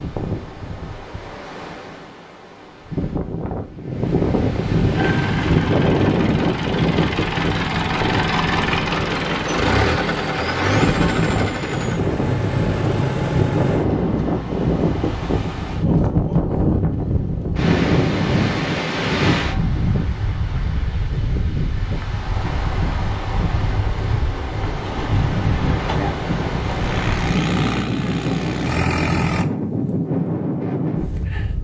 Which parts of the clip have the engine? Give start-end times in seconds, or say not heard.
5.0-15.3, 26.6-29.4.